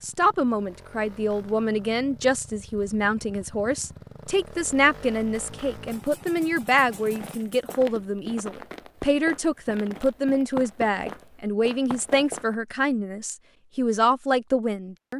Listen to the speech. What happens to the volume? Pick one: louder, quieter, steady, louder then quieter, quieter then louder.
steady.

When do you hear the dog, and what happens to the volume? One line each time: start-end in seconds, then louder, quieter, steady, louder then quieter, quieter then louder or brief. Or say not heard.
not heard.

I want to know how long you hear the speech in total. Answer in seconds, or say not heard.
15 s.